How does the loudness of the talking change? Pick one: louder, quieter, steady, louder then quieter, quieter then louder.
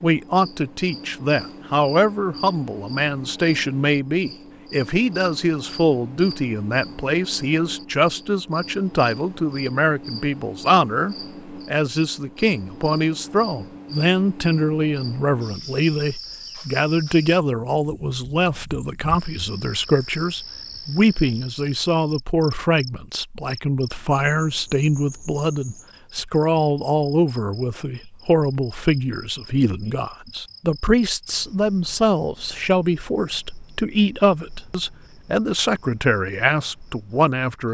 steady.